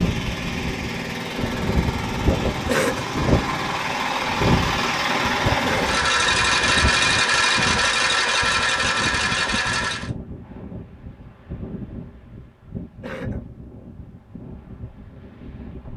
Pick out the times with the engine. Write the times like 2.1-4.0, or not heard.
0.0-10.1.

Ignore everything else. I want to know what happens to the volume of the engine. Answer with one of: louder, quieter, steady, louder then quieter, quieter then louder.
louder.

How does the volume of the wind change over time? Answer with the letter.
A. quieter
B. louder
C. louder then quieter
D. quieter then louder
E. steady
A.